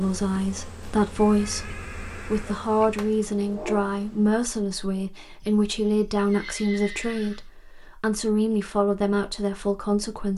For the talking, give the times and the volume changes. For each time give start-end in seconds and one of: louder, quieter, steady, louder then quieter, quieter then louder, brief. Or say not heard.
0.0-10.3 steady.